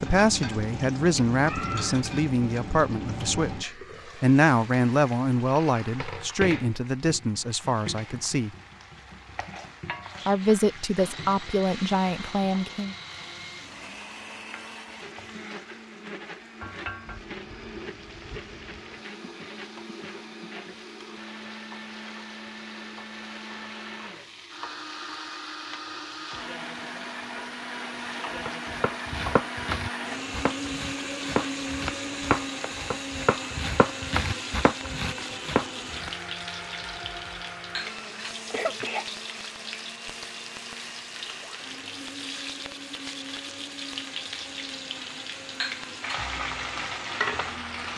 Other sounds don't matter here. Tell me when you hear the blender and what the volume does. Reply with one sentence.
The blender can be heard from 10.4 to 47.9 s, getting louder then quieter.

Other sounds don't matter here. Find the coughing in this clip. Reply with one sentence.
You can hear the coughing from 1.4 to 2.1 s and from 38.0 to 39.0 s.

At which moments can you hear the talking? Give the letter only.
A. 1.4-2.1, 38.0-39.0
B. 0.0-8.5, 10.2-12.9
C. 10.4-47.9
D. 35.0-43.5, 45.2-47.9
B.